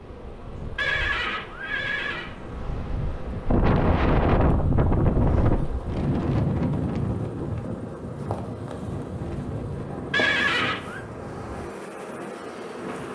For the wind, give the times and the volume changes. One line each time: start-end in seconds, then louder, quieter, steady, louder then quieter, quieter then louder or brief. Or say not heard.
0.0-13.1 louder then quieter.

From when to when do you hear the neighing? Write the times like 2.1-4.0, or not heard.
0.8-2.3, 10.1-11.0.